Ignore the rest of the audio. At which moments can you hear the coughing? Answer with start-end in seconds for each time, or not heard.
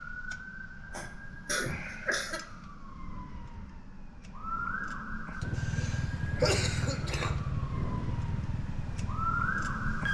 0.9-2.4, 5.5-7.3.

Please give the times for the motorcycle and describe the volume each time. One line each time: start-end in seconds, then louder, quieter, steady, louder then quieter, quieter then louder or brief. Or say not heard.
5.4-10.0 quieter.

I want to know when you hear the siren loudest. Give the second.
10 s.